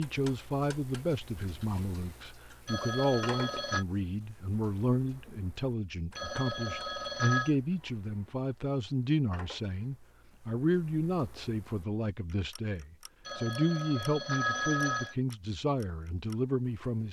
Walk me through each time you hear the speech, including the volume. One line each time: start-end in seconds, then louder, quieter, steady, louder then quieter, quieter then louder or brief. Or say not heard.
0.0-17.0 steady.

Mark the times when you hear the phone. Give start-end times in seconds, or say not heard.
2.6-3.9, 6.2-7.5, 13.2-15.2.